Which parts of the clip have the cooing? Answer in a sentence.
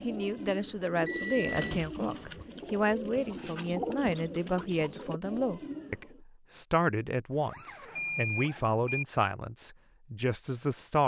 You can hear the cooing from 0.0 to 6.2 s.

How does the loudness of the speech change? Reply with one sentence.
The volume of the speech stays about the same.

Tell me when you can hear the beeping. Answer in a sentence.
The beeping can be heard from 0.8 to 1.8 s and from 8.0 to 9.1 s.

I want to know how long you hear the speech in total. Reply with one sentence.
You can hear the speech for 11 seconds altogether.